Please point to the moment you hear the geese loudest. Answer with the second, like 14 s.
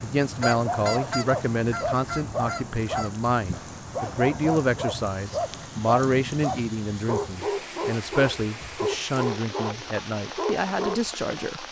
1 s.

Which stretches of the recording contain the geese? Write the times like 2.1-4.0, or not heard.
0.4-3.1.